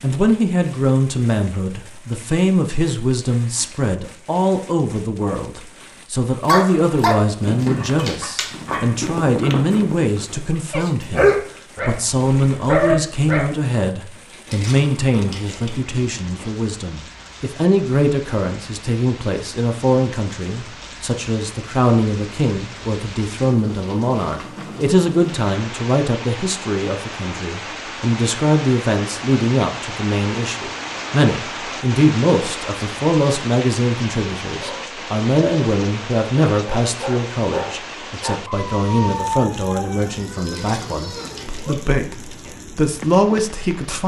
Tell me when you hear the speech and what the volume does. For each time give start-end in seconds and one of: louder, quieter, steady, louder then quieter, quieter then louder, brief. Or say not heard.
0.0-44.0 steady.